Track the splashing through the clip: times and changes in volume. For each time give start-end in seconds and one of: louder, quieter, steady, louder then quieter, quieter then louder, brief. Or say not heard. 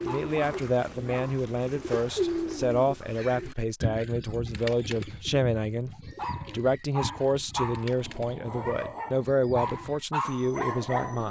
not heard.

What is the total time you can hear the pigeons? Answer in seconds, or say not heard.
11 s.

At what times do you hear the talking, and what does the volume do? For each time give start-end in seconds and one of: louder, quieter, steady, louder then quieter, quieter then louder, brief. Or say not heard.
0.0-11.2 steady.